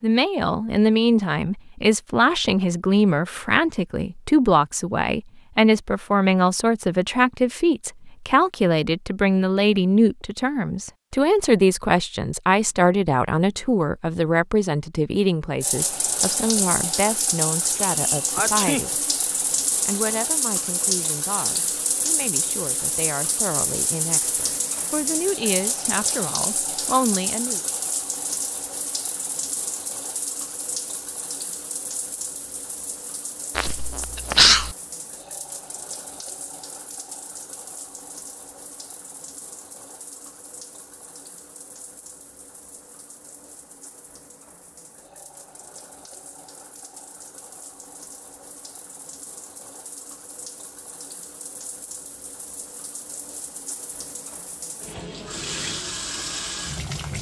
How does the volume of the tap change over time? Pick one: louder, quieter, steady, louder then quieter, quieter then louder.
quieter then louder.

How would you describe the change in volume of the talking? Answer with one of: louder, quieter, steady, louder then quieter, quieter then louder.
quieter.